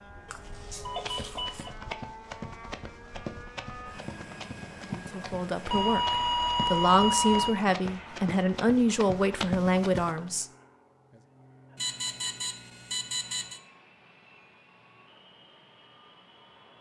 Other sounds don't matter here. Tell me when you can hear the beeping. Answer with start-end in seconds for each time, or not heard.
0.2-1.7, 5.7-7.5, 11.8-13.6.